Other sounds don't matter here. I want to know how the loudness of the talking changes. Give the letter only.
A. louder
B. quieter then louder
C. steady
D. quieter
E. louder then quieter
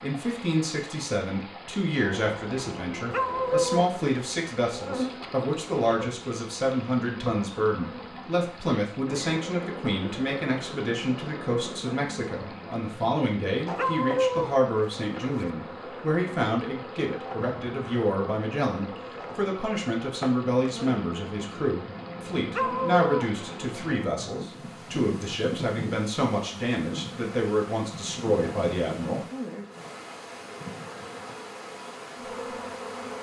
C.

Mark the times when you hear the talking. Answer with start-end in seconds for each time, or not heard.
0.0-29.2.